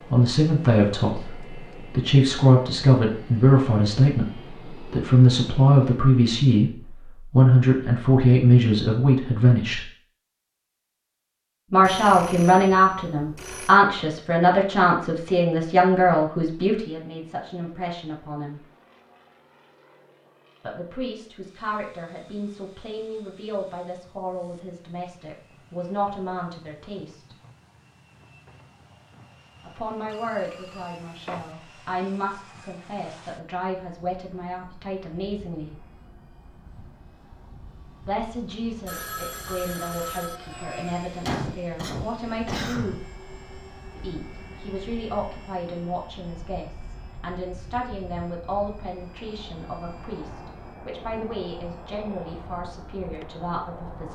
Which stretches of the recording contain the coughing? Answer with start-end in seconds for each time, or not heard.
41.2-43.0.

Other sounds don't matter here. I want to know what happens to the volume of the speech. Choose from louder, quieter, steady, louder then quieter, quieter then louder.
quieter.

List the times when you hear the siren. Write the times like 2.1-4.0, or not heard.
not heard.